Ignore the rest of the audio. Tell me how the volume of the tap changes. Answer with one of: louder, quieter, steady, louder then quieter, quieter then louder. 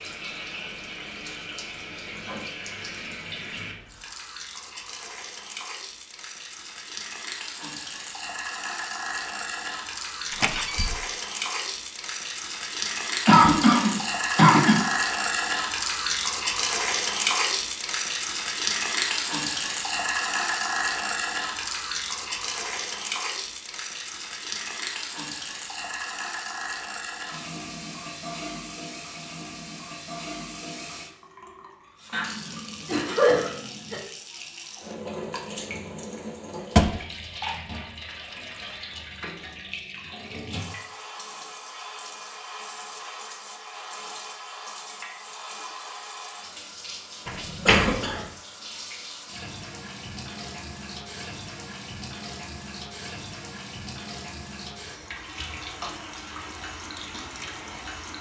louder then quieter.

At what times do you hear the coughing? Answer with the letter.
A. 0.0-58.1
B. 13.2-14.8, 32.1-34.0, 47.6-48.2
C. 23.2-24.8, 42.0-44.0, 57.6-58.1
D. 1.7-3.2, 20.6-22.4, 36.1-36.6
B.